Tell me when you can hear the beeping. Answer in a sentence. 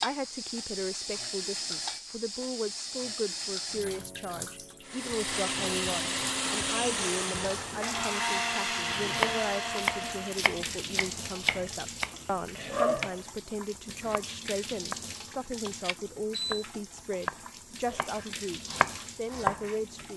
The beeping can be heard from 15.8 to 16.6 s.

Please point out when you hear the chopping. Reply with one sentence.
You can hear the chopping from 8.9 to 20.1 s.